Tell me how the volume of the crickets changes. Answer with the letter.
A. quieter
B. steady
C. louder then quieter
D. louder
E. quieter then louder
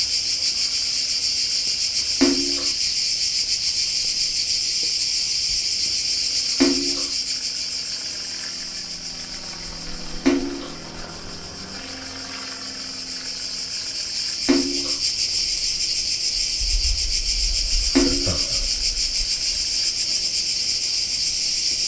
E.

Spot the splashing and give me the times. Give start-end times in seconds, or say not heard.
2.2-2.7, 6.6-7.1, 10.2-10.8, 14.4-14.9, 17.9-18.4.